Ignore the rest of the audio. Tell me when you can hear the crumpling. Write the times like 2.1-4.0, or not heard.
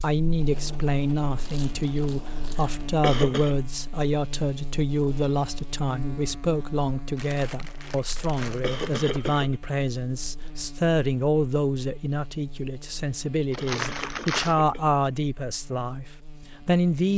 1.4-2.8, 7.2-9.2, 13.5-14.6.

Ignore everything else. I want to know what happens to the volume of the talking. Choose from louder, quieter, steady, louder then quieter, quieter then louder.
steady.